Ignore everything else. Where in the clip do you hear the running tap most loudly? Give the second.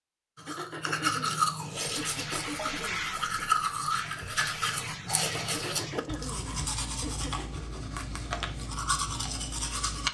3 s.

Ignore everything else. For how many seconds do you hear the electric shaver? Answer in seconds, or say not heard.
not heard.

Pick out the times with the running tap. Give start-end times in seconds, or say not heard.
1.9-6.2.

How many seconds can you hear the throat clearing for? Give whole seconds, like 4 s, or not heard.
5 s.